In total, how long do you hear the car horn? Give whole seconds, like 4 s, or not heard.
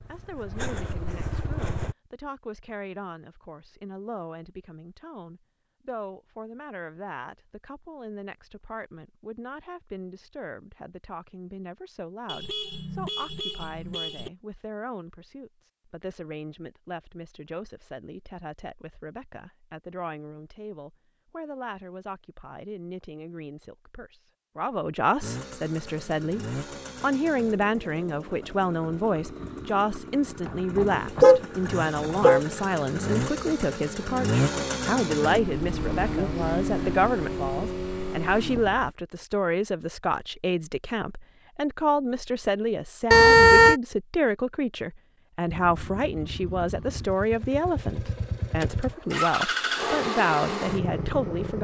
5 s.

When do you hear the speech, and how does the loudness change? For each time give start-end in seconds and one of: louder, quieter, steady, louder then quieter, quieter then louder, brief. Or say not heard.
0.1-51.5 louder.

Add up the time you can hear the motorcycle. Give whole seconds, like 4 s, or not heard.
22 s.